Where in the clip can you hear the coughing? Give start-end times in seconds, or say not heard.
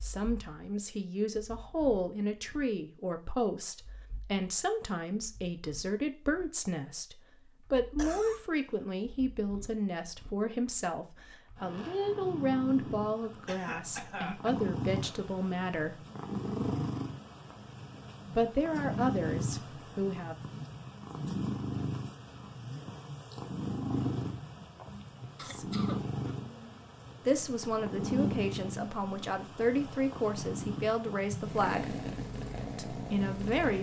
8.0-8.4, 13.4-14.6, 25.4-26.4.